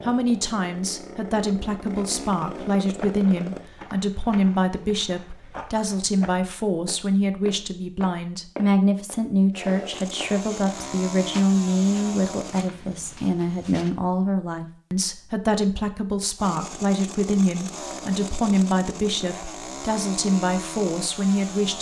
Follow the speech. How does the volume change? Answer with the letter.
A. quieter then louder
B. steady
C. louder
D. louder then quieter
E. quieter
B.